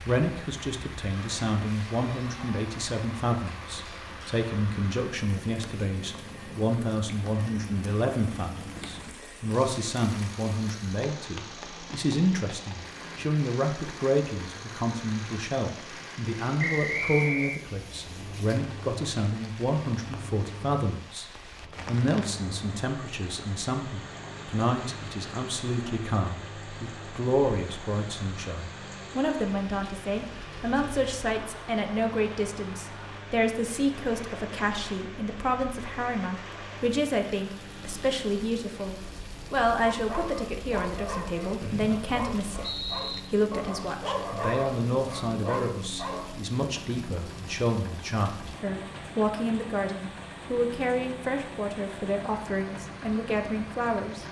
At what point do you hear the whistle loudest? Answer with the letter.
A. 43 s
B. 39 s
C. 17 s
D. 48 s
C.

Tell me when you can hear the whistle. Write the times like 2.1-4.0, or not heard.
16.6-17.6, 41.6-43.2.